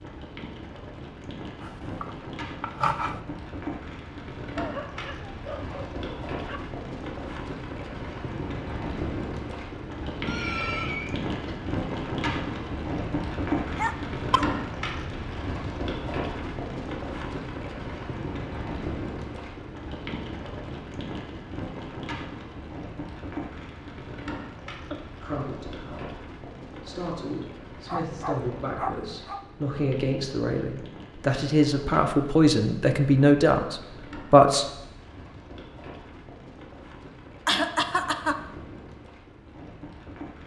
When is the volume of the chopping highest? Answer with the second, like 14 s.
3 s.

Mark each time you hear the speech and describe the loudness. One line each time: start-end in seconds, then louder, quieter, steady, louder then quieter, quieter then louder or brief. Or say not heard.
25.1-34.6 louder.